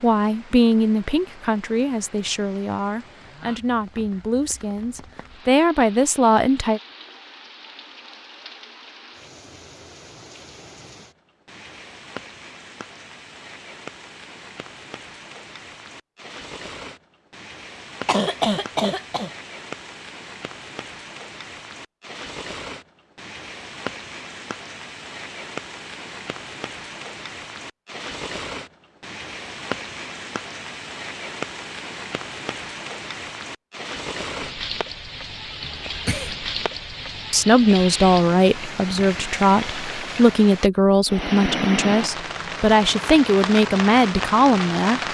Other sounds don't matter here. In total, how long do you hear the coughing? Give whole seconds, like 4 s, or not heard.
2 s.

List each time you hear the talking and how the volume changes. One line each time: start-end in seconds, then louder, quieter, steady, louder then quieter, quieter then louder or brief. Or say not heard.
0.0-6.8 quieter then louder
37.3-45.1 steady.